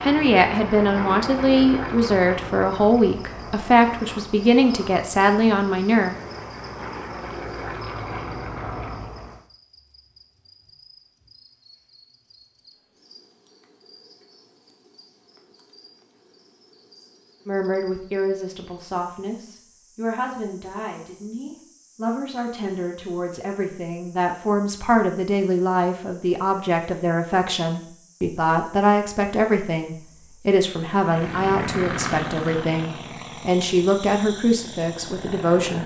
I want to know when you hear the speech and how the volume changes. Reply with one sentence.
You can hear the speech from 0.0 to 6.2 s, at a steady volume; and from 17.4 to 35.8 s, getting louder.